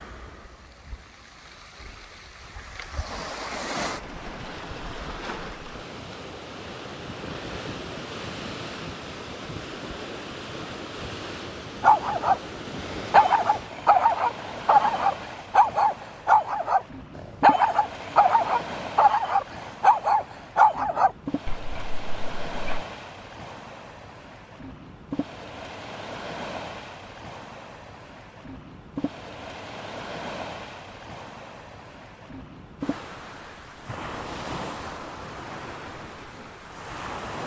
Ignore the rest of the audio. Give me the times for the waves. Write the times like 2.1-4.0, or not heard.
0.0-37.4.